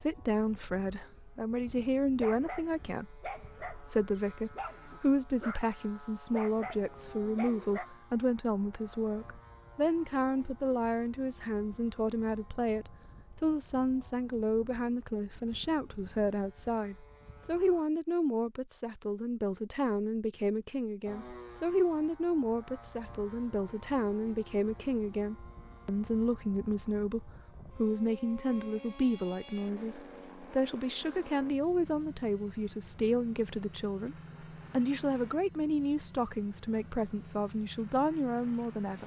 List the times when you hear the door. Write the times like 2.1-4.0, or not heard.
not heard.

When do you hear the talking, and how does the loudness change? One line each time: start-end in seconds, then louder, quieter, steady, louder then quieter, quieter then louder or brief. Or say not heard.
0.0-39.0 steady.